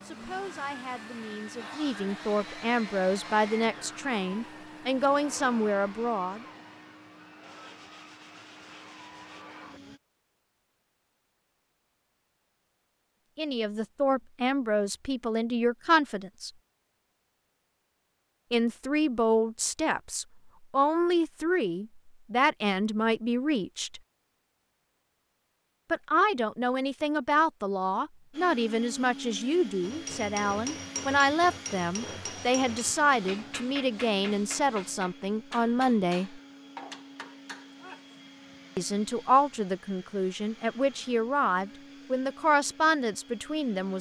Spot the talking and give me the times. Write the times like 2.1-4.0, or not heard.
0.0-6.5, 13.3-16.5, 18.5-24.0, 25.9-36.4, 38.8-43.9.